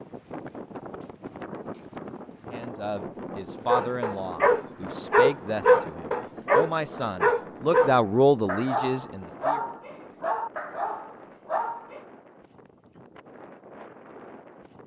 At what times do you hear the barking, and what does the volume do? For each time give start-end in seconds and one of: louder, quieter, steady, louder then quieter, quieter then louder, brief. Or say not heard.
3.6-12.0 quieter.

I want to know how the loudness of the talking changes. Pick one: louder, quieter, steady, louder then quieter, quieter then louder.
louder.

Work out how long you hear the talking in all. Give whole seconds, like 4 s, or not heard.
7 s.